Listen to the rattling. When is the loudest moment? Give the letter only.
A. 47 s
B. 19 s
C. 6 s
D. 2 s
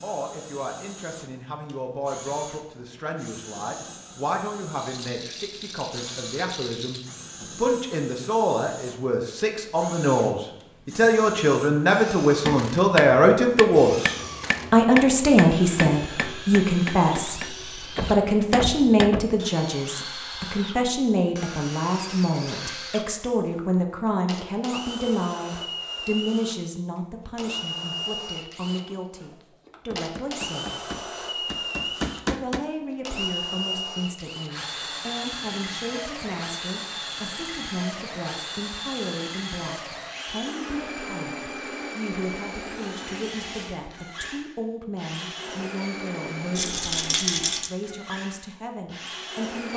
A.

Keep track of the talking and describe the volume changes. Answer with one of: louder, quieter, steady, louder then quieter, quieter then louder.
louder then quieter.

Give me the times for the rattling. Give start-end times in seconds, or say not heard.
4.8-7.0, 46.5-47.7.